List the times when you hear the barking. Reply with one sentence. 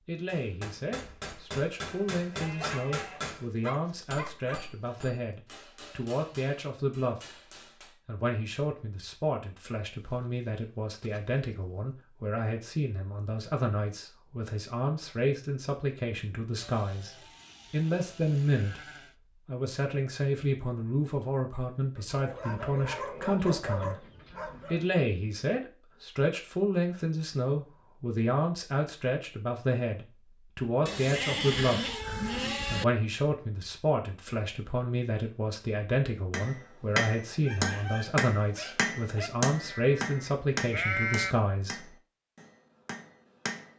The barking can be heard from 2.5 to 5.1 s, from 21.9 to 24.9 s and from 37.3 to 39.3 s.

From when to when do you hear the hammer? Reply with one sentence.
The hammer can be heard from 0.2 to 8.0 s and from 36.3 to 43.7 s.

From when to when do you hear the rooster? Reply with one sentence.
You can't hear the rooster here.